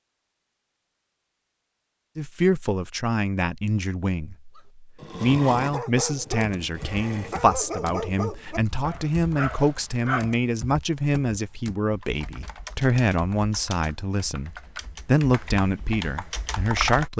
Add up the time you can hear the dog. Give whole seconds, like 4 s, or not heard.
6 s.